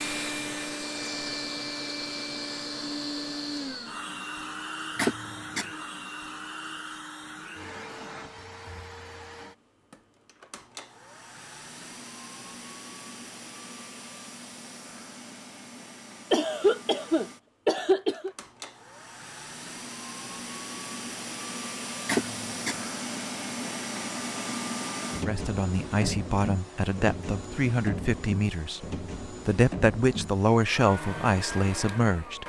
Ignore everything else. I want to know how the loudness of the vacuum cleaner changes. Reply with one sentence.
The volume of the vacuum cleaner goes down, then up.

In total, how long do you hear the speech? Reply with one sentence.
The speech can be heard for 7 seconds in total.